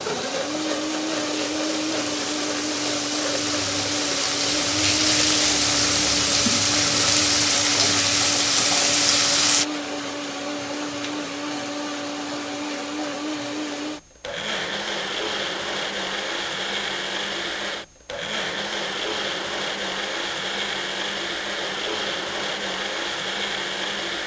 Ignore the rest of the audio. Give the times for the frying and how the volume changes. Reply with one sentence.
You can hear the frying from 0.0 to 9.7 s, getting louder.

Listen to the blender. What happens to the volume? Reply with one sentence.
The volume of the blender stays about the same.